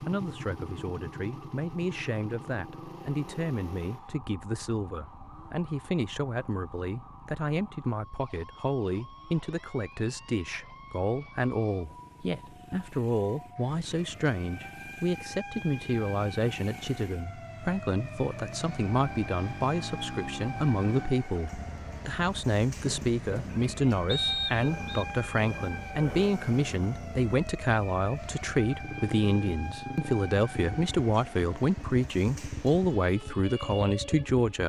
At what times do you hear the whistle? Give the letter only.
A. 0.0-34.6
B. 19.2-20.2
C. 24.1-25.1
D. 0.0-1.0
C.